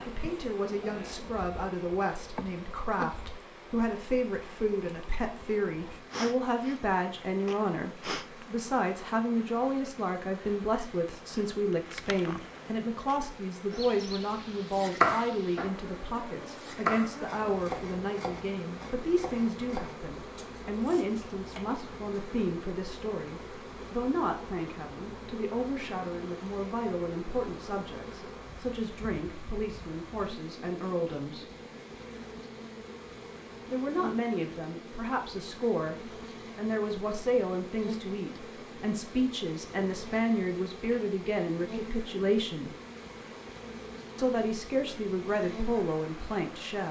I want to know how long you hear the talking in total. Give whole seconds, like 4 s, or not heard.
43 s.